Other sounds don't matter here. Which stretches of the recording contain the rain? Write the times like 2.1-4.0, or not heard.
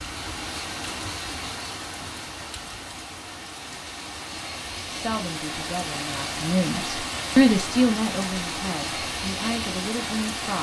0.0-10.5.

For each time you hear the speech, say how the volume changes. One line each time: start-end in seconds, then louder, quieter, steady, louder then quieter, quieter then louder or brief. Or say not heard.
4.8-10.5 louder then quieter.